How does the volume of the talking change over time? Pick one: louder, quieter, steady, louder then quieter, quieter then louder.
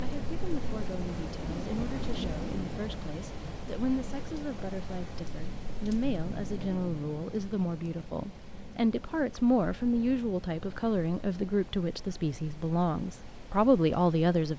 louder.